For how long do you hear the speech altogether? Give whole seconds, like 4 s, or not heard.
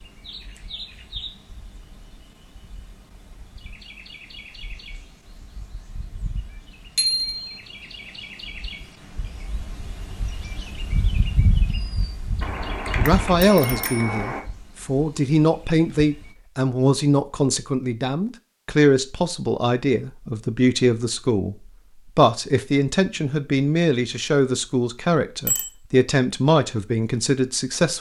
14 s.